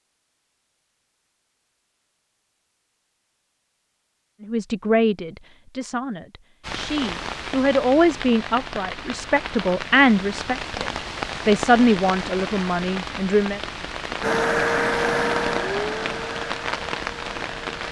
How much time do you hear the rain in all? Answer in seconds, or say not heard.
11 s.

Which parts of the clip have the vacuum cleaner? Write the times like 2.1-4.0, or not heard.
14.2-17.8.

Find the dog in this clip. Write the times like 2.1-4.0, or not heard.
not heard.